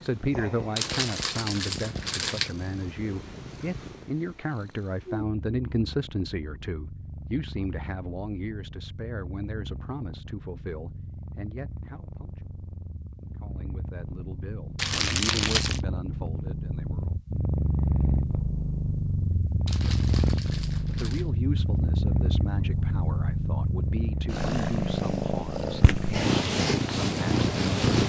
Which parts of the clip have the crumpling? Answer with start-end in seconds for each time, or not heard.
0.8-2.5, 14.8-15.8, 19.6-21.2.